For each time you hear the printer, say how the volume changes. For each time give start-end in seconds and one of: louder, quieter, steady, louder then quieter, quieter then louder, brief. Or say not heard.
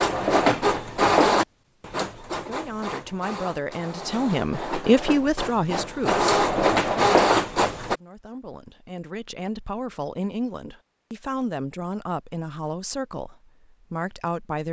0.0-8.0 quieter then louder.